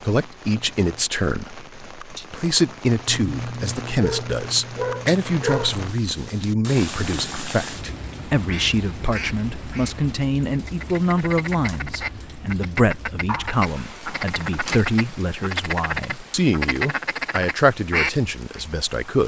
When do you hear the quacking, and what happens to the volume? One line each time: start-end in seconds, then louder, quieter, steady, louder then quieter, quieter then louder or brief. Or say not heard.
8.4-18.6 louder.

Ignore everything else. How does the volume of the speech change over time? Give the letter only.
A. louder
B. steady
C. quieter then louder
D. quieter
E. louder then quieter
B.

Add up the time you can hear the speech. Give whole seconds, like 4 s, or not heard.
19 s.